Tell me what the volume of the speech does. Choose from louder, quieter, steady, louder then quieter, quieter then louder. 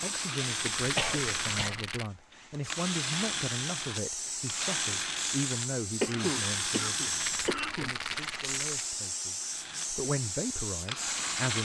quieter then louder.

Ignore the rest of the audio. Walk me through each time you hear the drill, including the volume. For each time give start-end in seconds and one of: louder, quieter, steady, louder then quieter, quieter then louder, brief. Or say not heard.
0.0-7.5 steady
9.4-11.5 brief.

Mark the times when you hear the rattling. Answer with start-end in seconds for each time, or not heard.
0.5-2.1, 7.0-8.9.